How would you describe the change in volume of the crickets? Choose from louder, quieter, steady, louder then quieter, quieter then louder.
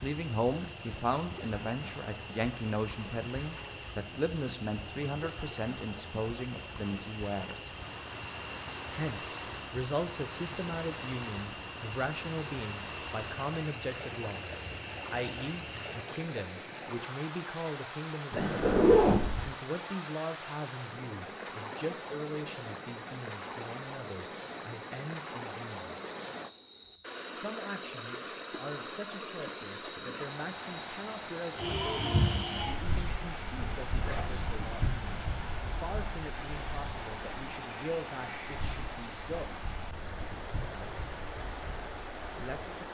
louder then quieter.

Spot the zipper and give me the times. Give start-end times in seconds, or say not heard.
18.3-19.5, 33.9-34.4.